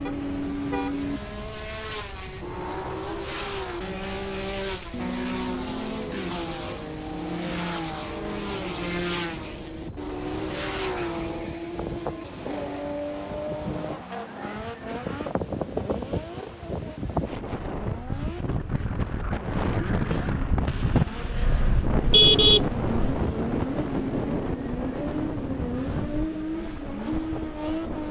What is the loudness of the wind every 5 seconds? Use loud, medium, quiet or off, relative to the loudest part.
quiet, quiet, medium, loud, loud, medium.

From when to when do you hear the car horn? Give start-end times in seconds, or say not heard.
0.1-1.5, 21.9-22.9.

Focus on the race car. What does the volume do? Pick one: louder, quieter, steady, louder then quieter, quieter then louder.
quieter then louder.